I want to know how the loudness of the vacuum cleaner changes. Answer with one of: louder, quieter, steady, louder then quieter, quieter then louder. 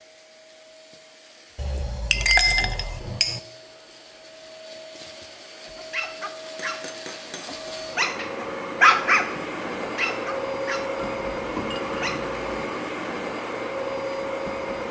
louder.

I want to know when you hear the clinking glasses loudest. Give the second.
2 s.